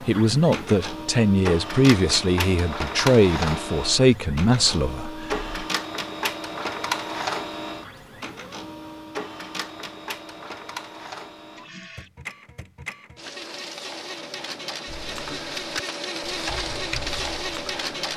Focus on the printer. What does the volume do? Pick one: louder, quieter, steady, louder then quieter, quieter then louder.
quieter then louder.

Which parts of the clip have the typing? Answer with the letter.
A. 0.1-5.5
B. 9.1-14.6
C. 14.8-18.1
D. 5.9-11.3
C.